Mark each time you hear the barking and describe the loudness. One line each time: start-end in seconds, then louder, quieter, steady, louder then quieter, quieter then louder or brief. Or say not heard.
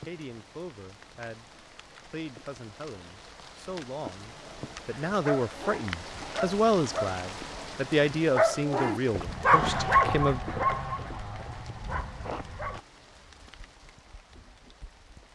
4.3-12.8 louder then quieter.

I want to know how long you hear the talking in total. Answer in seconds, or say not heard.
10 s.